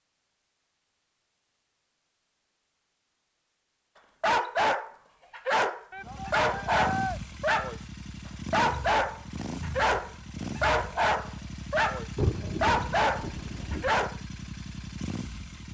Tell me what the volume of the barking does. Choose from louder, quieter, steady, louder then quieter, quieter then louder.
steady.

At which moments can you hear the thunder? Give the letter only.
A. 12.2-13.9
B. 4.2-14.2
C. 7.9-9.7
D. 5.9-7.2
A.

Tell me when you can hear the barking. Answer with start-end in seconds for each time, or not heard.
4.2-14.2.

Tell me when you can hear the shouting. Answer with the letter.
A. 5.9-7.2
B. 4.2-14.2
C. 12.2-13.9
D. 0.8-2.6
A.